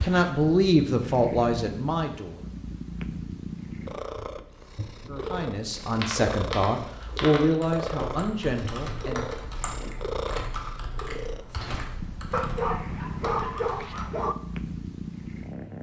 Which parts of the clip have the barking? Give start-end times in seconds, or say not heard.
12.3-14.3.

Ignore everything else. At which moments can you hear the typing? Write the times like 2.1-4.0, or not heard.
5.9-14.1.